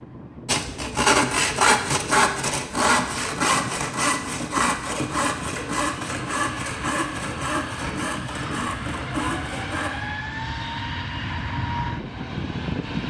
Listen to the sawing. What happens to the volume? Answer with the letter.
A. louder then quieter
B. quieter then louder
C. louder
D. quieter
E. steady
D.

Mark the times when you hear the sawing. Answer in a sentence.
You can hear the sawing from 0.5 to 9.9 s.